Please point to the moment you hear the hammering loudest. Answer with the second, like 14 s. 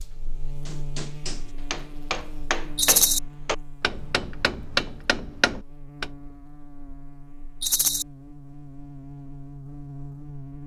5 s.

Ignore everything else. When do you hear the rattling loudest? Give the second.
3 s.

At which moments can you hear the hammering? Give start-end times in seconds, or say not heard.
0.7-6.0.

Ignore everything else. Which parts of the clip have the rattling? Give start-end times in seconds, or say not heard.
2.8-3.2, 7.6-8.1.